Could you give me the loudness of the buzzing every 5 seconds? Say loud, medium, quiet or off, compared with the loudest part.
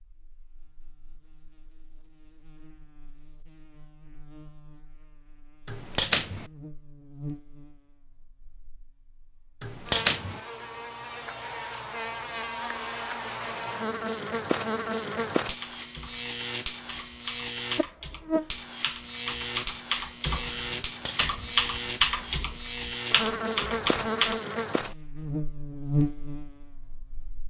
quiet, quiet, loud, loud, loud, loud.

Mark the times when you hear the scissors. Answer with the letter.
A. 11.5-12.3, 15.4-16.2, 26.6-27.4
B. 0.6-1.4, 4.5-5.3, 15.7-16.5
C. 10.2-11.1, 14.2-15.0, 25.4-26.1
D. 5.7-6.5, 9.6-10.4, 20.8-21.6
D.